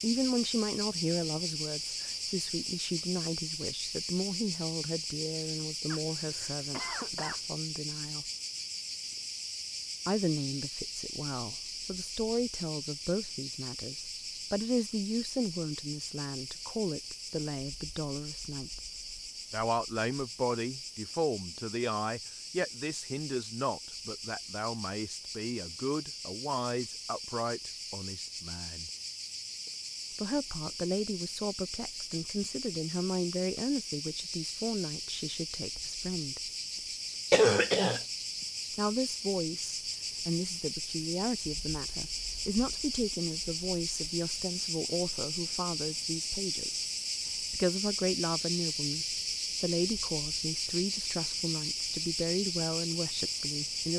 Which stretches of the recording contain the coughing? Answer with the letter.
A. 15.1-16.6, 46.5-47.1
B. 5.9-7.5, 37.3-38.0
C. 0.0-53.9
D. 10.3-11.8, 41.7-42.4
B.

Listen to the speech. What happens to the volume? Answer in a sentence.
The loudness of the speech stays about the same.